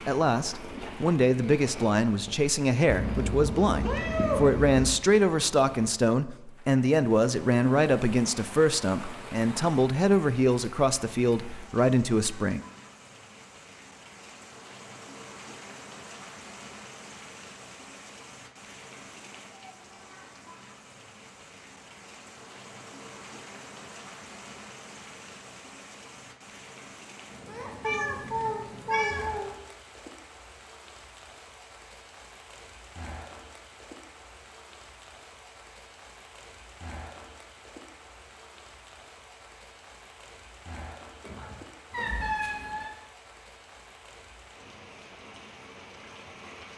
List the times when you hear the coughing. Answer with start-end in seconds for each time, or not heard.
41.2-42.1.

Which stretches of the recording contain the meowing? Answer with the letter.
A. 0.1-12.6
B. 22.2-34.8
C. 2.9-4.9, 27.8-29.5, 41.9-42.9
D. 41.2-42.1
C.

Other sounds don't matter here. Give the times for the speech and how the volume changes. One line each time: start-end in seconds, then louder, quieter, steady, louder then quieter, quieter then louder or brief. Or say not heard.
0.1-12.6 steady.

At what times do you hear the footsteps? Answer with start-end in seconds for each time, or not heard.
not heard.